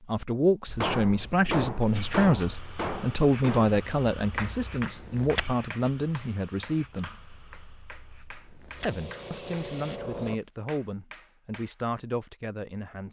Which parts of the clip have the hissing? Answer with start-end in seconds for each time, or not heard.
1.9-10.4.